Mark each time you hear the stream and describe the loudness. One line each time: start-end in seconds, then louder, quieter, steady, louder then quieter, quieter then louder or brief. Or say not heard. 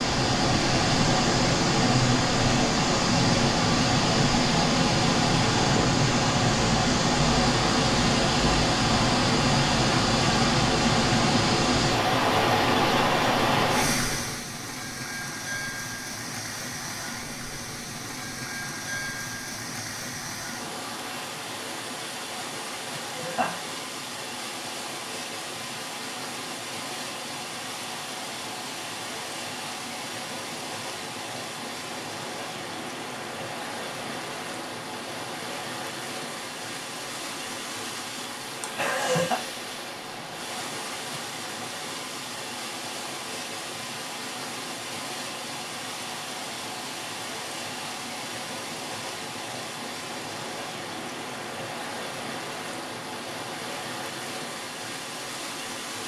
0.0-56.0 quieter.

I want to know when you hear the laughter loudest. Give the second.
39 s.